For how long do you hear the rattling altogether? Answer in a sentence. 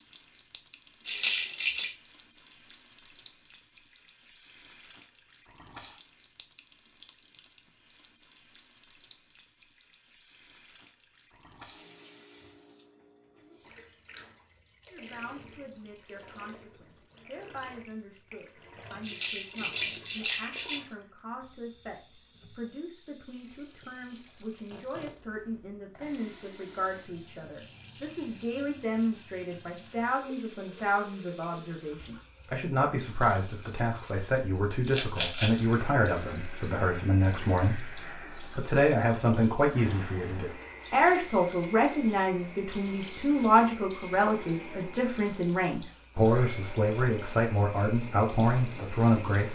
You can hear the rattling for 3 seconds altogether.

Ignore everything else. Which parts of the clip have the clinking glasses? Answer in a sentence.
The clinking glasses can't be heard in this clip.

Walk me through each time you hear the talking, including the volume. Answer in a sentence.
You can hear the talking from 14.9 to 49.4 s, getting louder.